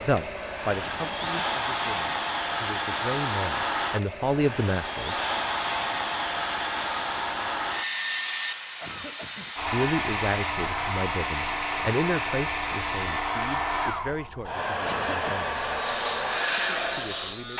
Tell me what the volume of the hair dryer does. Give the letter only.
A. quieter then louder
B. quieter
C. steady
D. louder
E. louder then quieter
C.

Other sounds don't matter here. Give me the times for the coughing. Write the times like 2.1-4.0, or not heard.
0.8-1.6, 8.8-9.6, 14.8-15.4.